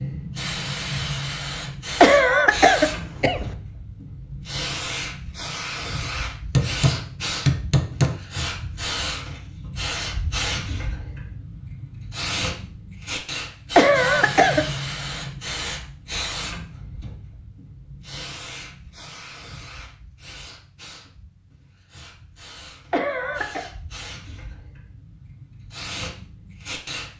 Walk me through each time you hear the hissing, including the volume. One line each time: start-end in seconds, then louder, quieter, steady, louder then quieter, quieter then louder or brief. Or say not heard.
0.0-27.1 quieter.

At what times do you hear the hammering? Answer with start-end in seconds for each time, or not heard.
6.5-8.2.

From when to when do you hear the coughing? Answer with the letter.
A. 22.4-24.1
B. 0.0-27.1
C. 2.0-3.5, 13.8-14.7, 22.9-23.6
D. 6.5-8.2
C.